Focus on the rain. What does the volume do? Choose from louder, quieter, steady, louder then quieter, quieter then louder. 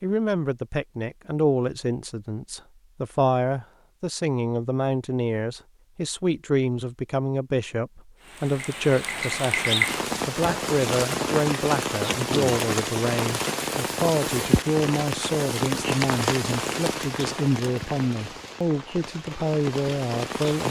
quieter.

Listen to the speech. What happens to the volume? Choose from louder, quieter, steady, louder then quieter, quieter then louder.
steady.